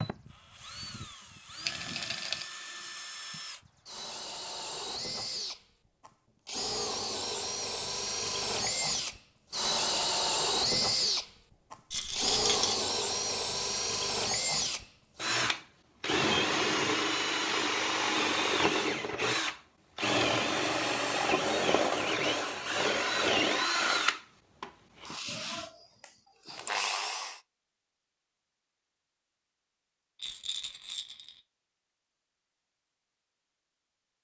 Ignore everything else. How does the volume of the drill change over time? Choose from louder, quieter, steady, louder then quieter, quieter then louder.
louder.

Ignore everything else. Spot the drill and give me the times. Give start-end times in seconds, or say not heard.
0.0-27.4.